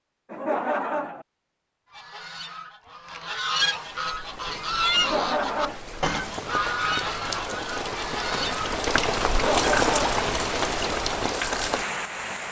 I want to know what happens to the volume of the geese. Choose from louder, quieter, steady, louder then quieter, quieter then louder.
louder then quieter.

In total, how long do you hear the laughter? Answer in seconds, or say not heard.
3 s.